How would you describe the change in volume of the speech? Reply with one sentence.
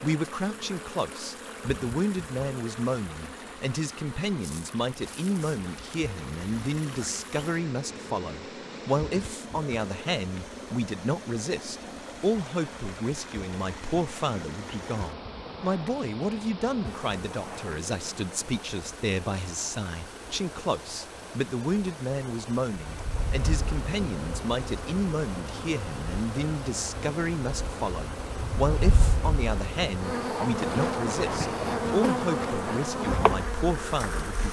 The volume of the speech stays about the same.